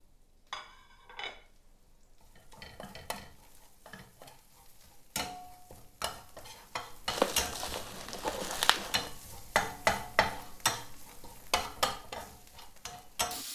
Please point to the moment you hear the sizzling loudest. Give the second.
10 s.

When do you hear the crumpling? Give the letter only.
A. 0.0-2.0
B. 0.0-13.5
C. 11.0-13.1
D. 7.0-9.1
D.